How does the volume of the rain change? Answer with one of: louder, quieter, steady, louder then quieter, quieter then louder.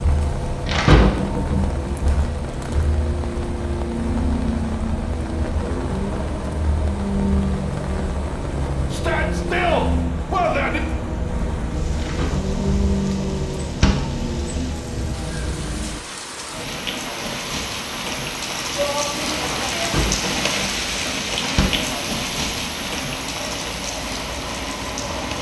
louder.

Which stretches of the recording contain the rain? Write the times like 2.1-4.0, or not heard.
0.0-25.3.